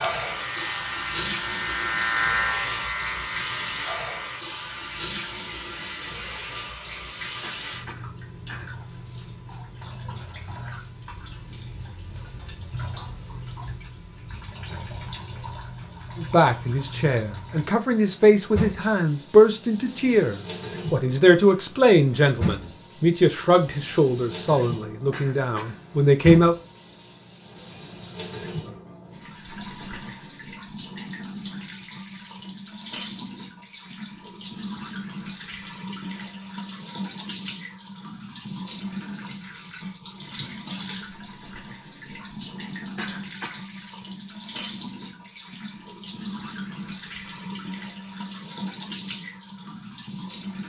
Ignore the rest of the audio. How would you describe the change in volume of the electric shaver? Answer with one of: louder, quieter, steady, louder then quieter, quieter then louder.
louder then quieter.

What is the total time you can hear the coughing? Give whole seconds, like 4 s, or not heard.
3 s.